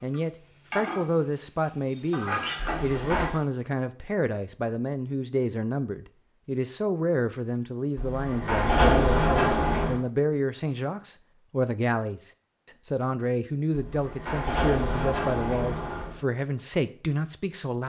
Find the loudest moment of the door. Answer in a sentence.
The volume of the door peaks at 9 seconds.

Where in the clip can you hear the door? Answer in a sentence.
You can hear the door from 2.5 to 3.4 s, from 8.0 to 10.0 s and from 13.8 to 16.2 s.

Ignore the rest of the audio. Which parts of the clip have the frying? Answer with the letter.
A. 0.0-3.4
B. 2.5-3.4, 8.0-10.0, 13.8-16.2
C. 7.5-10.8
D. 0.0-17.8
A.